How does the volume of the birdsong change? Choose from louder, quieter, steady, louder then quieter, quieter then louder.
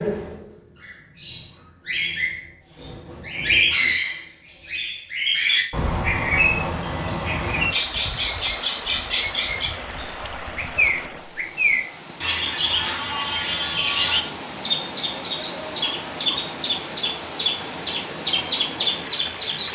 steady.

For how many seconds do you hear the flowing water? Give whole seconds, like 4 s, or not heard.
12 s.